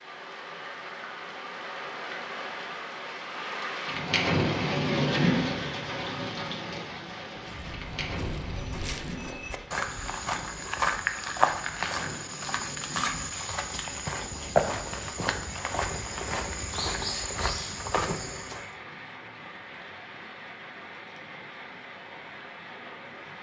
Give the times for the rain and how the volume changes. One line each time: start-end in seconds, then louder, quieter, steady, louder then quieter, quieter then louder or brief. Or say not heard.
0.0-23.3 quieter.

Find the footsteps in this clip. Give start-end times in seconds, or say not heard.
7.3-18.6.